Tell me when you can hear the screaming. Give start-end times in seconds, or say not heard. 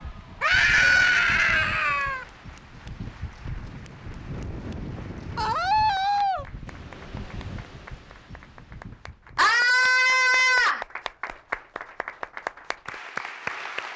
0.4-2.2, 5.3-6.5, 9.3-10.8.